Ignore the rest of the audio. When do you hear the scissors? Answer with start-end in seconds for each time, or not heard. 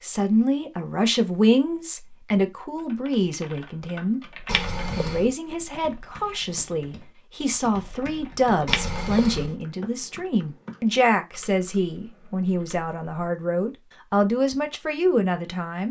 4.5-5.3, 8.7-9.6.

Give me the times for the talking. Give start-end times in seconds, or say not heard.
0.0-4.2, 5.0-15.8.